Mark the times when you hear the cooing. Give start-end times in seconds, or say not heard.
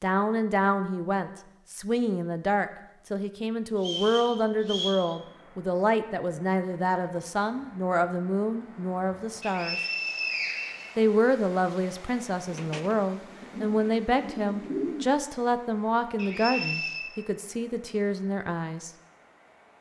12.5-15.1.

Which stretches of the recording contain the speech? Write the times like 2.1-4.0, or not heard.
0.0-9.8, 10.9-18.9.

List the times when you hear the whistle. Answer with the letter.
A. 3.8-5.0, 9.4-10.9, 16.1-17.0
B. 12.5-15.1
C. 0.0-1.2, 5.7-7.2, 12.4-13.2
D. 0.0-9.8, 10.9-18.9
A.